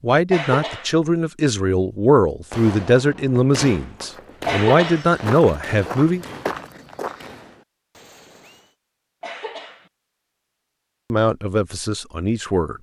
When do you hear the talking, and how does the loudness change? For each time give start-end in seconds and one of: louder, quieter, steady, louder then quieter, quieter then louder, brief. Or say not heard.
0.0-6.2 steady
11.1-12.7 brief.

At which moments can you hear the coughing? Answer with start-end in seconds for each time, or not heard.
0.3-0.9, 4.5-5.1, 9.2-9.9.